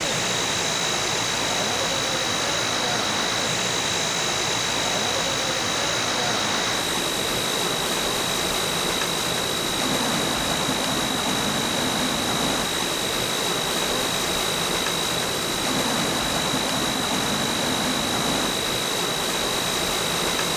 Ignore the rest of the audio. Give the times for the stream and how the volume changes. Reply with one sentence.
The stream can be heard from 0.0 to 20.5 s, at a steady volume.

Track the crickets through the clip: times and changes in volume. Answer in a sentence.
The crickets can be heard from 0.0 to 20.5 s, at a steady volume.